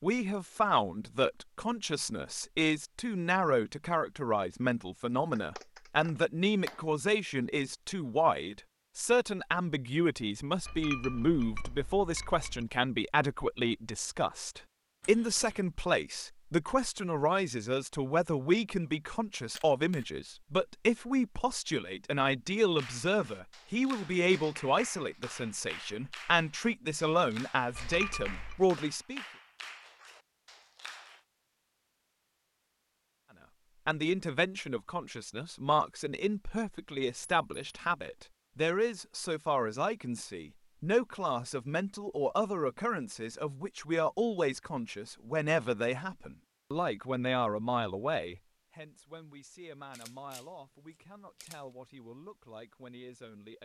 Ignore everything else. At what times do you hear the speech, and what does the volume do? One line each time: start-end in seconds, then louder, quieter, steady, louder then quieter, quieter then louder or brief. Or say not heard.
0.0-29.2 steady
33.9-53.5 quieter.